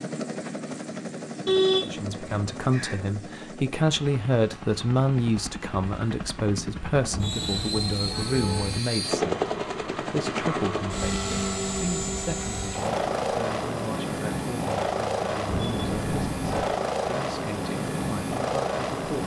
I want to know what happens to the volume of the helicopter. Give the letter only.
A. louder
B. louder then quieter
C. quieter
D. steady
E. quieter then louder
A.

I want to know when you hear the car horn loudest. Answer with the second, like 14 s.
2 s.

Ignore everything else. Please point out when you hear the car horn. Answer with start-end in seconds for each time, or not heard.
1.4-3.0, 7.1-8.8, 15.4-16.8.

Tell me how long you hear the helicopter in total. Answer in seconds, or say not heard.
19 s.